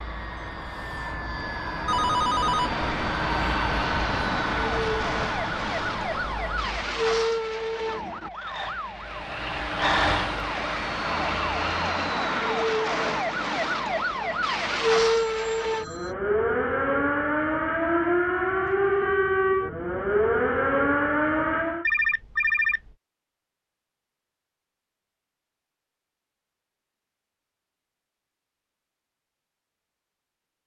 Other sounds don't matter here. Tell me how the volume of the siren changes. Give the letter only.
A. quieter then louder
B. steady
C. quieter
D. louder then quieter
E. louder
E.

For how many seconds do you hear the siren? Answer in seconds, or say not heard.
19 s.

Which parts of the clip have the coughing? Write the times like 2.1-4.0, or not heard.
not heard.